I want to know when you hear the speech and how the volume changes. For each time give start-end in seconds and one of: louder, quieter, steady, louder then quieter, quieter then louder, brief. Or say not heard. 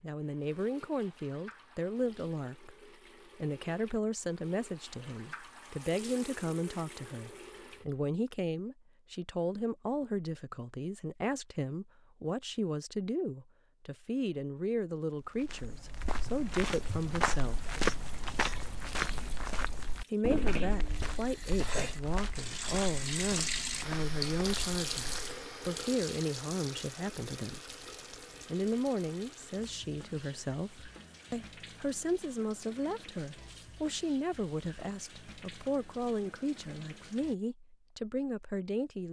0.0-17.8 steady
20.1-27.8 steady
28.5-39.0 steady.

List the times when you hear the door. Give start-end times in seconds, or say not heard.
not heard.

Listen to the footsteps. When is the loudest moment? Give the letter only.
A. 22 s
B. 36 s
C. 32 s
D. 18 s
D.